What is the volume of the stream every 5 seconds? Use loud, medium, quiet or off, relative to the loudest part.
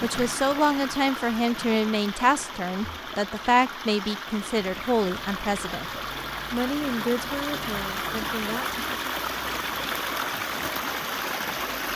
medium, loud, loud.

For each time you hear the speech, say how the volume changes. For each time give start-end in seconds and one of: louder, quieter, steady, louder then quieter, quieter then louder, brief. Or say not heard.
0.0-8.8 quieter.